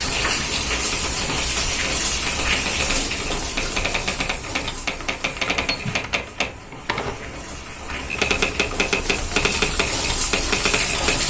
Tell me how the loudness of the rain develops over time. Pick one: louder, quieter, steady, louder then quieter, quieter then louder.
quieter then louder.